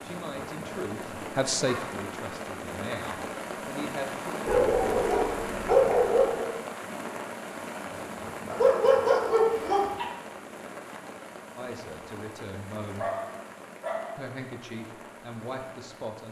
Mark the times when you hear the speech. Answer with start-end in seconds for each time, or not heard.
0.0-4.3, 11.6-13.1, 14.2-16.2.